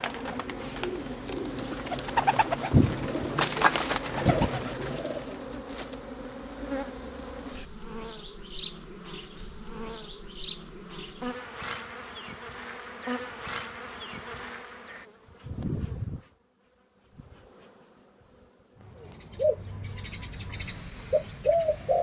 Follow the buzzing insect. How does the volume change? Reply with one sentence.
The volume of the buzzing insect goes down.